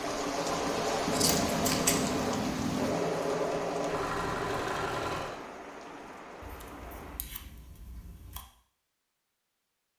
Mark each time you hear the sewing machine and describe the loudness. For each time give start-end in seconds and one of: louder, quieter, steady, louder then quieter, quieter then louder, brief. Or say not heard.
0.0-5.4 steady.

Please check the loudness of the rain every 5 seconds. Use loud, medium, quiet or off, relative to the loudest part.
loud, medium.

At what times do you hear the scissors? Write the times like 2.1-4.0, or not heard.
1.1-3.0, 6.4-8.4.